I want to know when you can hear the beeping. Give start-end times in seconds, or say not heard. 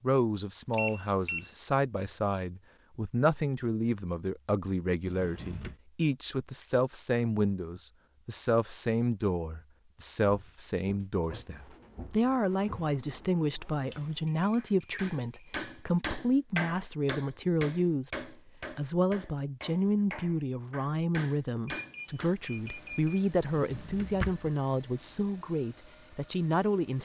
0.7-1.5, 13.9-15.9, 21.6-23.2.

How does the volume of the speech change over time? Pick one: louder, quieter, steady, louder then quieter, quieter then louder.
steady.